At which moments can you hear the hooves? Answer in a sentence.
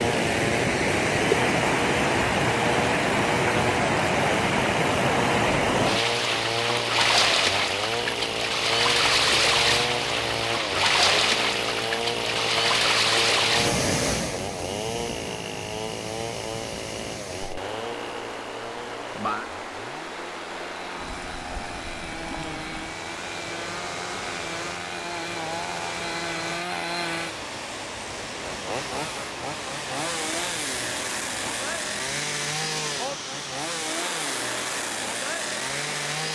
The hooves can't be heard in this clip.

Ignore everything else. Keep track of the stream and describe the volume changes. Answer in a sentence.
The loudness of the stream goes down.